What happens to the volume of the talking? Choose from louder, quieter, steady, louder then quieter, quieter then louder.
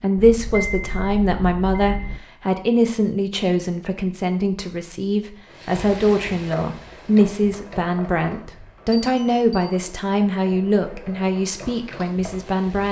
steady.